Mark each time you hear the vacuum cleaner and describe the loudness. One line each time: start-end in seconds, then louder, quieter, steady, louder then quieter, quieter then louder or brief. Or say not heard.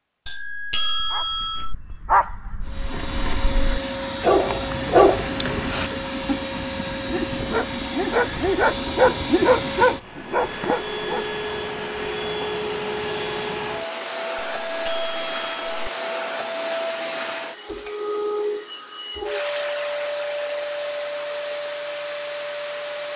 2.6-23.1 steady.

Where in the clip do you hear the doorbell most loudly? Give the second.
1 s.